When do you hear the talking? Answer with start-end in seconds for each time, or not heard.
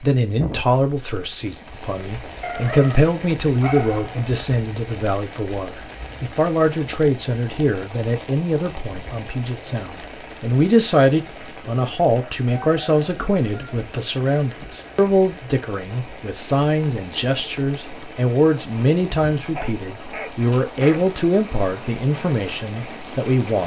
0.0-23.6.